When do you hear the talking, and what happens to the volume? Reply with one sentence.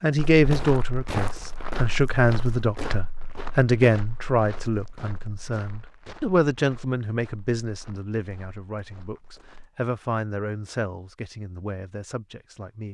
You can hear the talking from 0.0 to 12.8 s, getting quieter.